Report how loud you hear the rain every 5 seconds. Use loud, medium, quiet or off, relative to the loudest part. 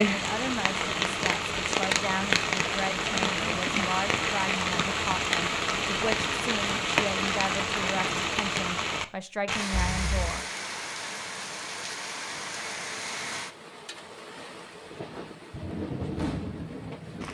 loud, loud, medium, medium.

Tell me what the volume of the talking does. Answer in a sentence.
The loudness of the talking stays about the same.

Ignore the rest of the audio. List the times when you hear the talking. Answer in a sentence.
You can hear the talking from 0.1 to 10.4 s.